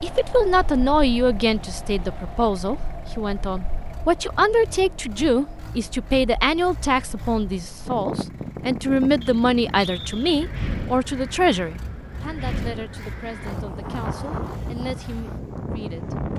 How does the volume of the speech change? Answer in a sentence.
The volume of the speech goes down.